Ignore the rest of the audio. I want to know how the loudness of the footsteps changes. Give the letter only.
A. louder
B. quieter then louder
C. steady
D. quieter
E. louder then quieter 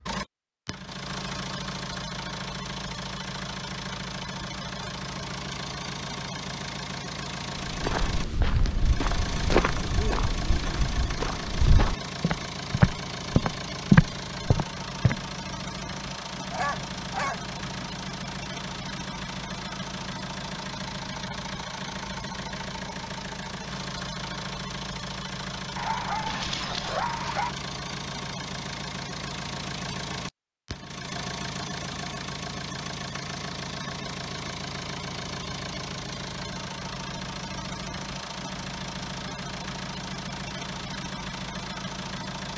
A.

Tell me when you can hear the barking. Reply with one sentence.
The barking can be heard from 16.5 to 17.9 s and from 25.8 to 27.6 s.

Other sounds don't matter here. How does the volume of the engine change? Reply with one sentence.
The volume of the engine stays about the same.